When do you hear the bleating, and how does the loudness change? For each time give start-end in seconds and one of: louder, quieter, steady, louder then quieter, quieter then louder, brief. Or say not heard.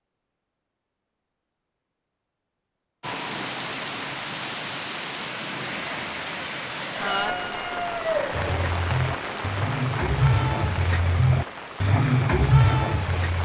8.3-13.4 louder.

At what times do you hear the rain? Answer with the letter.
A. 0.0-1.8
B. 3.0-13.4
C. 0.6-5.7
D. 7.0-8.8
B.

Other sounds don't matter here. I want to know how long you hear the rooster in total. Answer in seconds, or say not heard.
2 s.